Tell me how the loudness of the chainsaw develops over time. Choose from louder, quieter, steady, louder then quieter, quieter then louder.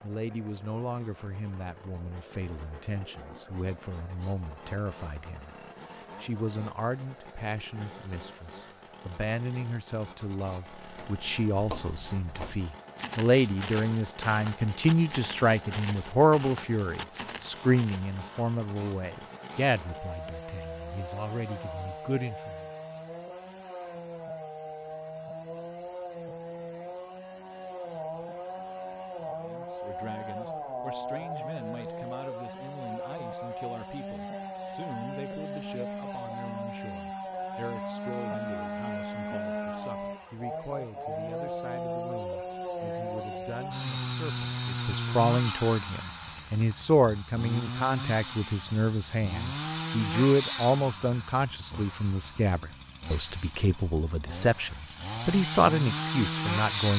louder.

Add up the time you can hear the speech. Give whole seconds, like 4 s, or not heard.
50 s.